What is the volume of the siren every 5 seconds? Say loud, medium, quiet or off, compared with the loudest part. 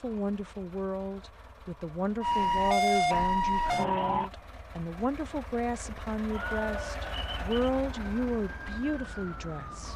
loud, quiet.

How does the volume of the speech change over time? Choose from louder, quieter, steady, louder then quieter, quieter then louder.
steady.